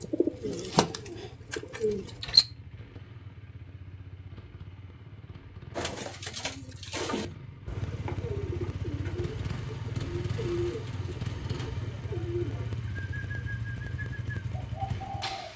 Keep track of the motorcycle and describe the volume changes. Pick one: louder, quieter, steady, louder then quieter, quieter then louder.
louder.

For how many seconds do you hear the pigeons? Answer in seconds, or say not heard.
12 s.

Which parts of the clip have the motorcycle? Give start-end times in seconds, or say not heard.
0.0-15.5.